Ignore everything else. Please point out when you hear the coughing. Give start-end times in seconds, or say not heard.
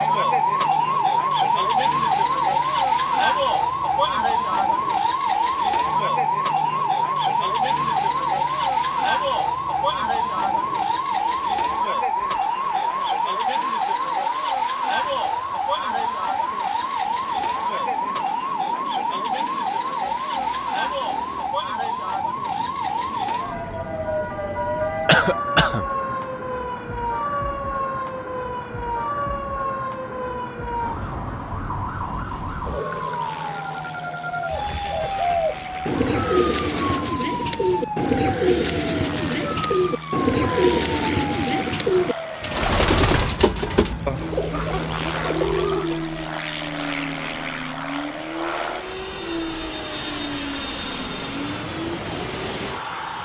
25.1-25.9.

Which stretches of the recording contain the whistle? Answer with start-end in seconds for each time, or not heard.
not heard.